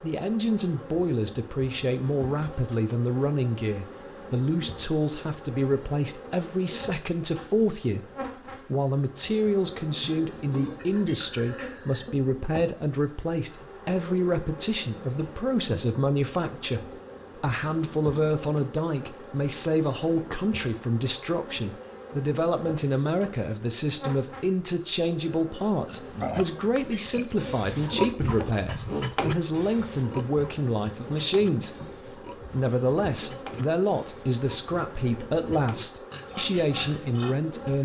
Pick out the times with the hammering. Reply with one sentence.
You can't hear the hammering here.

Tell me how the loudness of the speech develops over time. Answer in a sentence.
The volume of the speech stays about the same.